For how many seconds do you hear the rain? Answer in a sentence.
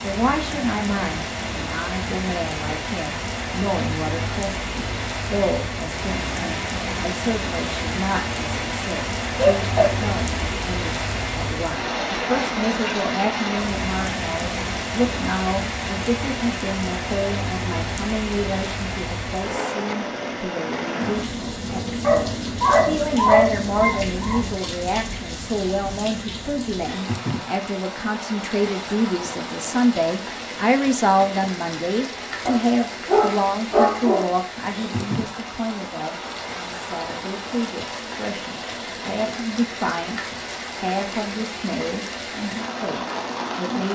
You can hear the rain for 44 seconds altogether.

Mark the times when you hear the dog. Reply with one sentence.
The dog can be heard from 9.3 to 10.5 s, from 22.0 to 24.6 s and from 32.5 to 34.3 s.